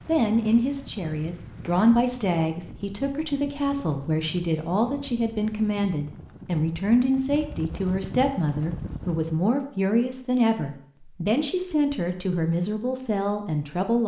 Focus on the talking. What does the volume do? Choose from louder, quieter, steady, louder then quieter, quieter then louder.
steady.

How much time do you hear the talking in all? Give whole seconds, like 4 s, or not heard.
14 s.